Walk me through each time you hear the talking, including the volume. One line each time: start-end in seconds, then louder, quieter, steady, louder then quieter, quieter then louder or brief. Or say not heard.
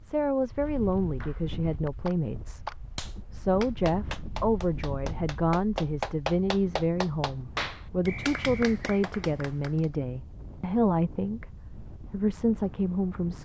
0.0-13.4 steady.